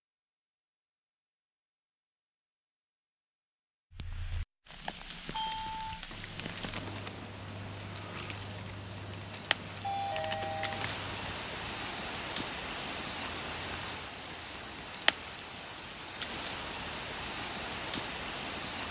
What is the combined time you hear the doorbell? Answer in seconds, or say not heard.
2 s.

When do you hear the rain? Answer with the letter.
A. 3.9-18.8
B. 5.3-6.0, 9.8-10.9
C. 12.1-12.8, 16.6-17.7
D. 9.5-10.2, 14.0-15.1
A.